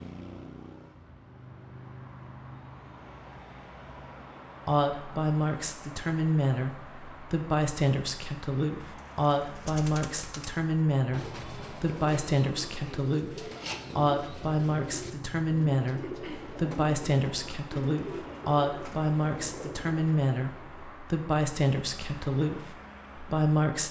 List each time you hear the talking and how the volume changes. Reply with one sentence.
The talking can be heard from 4.7 to 23.8 s, at a steady volume.